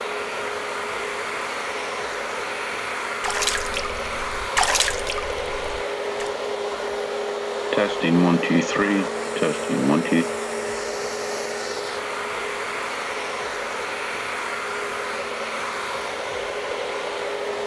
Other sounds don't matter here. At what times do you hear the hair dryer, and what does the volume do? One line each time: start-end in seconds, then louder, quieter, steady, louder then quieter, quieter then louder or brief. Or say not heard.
0.0-17.6 steady.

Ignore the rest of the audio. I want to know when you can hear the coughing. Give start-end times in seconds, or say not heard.
7.7-10.3.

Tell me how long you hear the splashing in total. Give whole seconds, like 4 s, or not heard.
3 s.